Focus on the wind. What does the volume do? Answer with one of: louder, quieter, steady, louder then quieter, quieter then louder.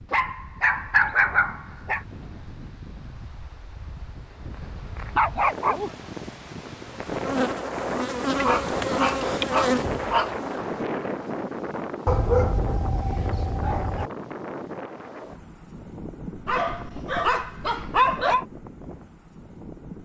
louder then quieter.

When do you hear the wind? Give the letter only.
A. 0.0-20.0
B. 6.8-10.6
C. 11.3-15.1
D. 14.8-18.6
A.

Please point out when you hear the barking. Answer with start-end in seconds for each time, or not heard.
0.1-2.0, 5.0-5.9, 8.3-10.3, 12.1-14.1, 16.4-18.4.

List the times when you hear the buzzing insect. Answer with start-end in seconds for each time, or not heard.
6.8-10.6.